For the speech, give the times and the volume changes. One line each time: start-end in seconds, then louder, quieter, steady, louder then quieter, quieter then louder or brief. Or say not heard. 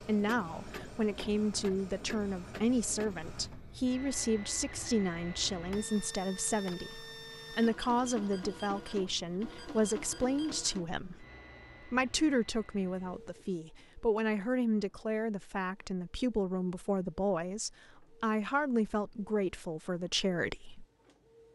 0.0-11.2 steady
11.8-20.9 steady.